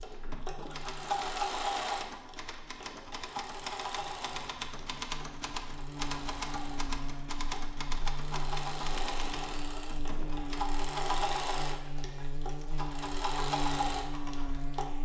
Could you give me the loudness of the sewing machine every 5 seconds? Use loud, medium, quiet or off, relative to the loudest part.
loud, medium, loud.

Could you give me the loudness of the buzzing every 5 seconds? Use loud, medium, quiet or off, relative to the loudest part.
quiet, loud, loud.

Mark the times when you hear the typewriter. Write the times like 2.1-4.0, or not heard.
0.0-10.7.